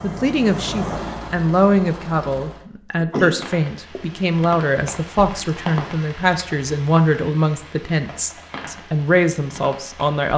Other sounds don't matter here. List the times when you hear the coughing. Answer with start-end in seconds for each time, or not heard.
3.0-4.0.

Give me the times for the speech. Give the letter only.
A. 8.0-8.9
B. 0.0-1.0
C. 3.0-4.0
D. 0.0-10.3
D.